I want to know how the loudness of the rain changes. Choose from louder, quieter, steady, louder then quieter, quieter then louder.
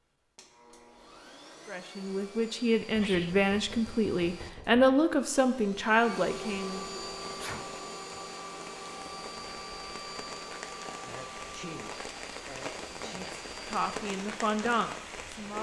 louder.